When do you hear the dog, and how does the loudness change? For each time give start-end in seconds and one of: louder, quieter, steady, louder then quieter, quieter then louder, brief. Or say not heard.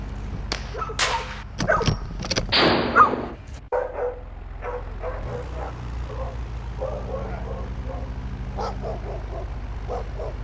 0.1-10.3 louder then quieter.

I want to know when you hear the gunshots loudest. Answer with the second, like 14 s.
3 s.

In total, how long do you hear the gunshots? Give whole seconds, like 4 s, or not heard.
3 s.